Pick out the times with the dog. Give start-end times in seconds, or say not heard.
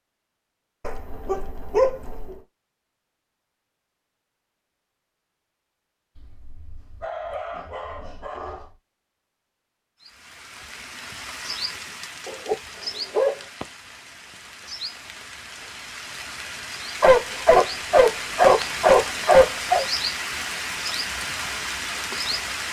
0.8-2.3, 6.2-8.8, 12.2-13.3, 17.0-19.9.